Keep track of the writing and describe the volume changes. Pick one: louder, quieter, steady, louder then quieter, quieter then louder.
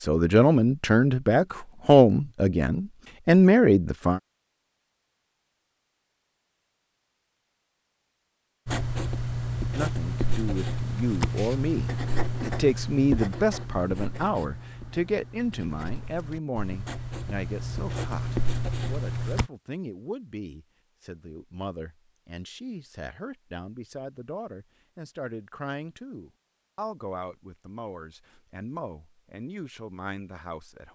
quieter then louder.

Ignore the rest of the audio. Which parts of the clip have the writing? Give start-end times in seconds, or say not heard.
8.7-19.5.